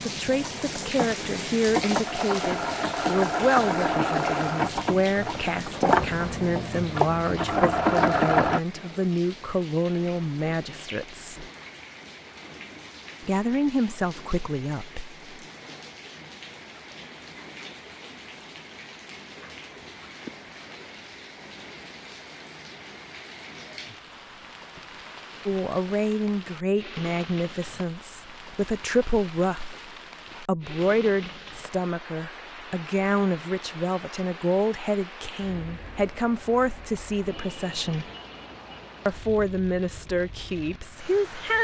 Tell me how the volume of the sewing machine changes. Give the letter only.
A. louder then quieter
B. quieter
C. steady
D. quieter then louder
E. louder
E.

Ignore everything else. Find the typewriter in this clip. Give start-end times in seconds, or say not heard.
not heard.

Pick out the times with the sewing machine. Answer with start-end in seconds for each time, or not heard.
0.0-8.6.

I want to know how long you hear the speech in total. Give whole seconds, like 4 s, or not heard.
28 s.